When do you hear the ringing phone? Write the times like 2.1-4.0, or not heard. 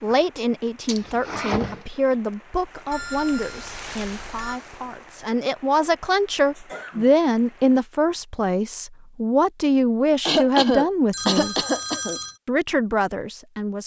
2.9-4.6, 11.1-12.4.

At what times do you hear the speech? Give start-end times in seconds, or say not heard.
0.0-11.6, 12.4-13.8.